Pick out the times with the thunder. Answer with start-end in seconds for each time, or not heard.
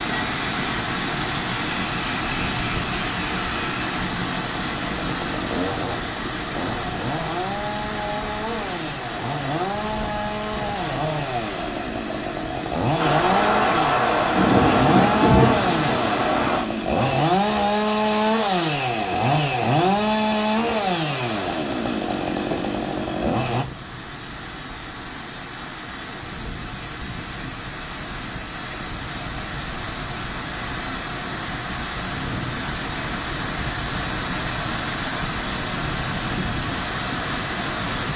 12.9-16.6.